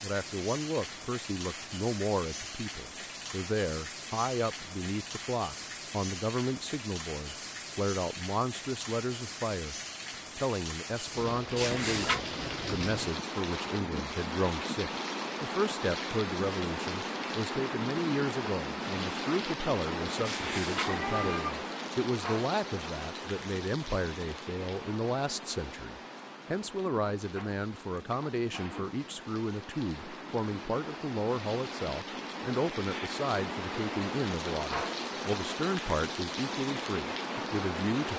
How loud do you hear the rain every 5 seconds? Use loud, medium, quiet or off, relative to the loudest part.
medium, medium, loud, loud, loud, medium, loud, loud.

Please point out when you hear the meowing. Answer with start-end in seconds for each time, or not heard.
11.6-12.2, 20.2-21.6.